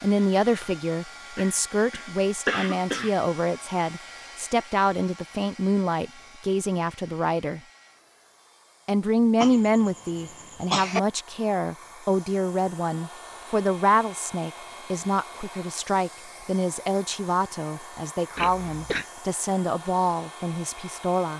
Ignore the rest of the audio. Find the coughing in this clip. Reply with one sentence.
You can hear the coughing from 1.4 to 3.1 s, from 9.4 to 11.0 s and from 18.4 to 19.1 s.